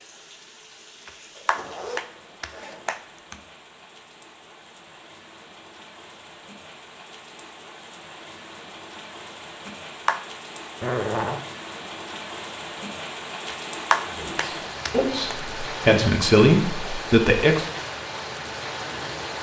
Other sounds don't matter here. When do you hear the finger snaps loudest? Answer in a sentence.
The volume of the finger snaps peaks at 14 seconds.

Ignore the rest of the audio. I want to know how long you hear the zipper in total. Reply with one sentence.
The zipper can be heard for 2 seconds in total.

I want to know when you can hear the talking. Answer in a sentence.
The talking can be heard from 14.1 to 17.6 s.